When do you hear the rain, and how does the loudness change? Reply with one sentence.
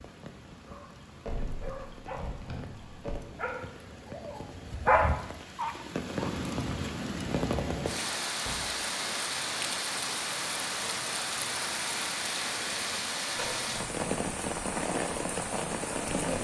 The rain can be heard from 0.0 to 16.3 s, getting louder.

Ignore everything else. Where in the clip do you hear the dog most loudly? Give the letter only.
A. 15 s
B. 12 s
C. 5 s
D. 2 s
C.